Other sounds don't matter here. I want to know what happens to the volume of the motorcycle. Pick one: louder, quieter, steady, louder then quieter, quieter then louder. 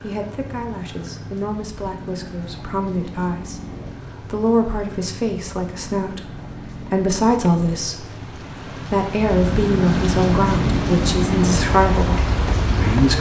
louder.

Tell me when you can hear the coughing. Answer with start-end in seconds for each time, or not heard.
not heard.